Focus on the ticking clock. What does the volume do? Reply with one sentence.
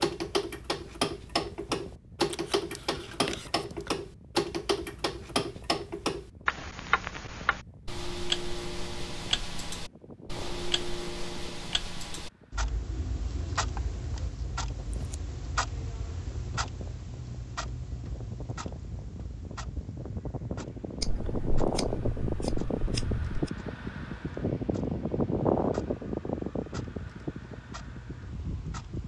The loudness of the ticking clock goes down.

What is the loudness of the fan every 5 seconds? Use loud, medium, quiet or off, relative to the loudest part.
quiet, quiet, quiet, quiet, loud, loud.